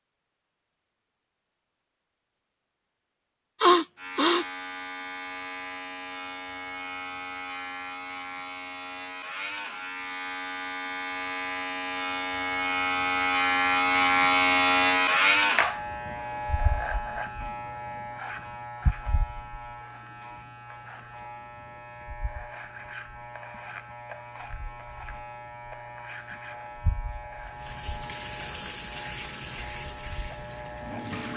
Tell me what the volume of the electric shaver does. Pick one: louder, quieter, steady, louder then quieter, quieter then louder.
louder then quieter.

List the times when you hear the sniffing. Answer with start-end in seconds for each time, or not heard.
3.6-4.5.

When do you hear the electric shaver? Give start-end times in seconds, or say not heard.
4.0-31.3.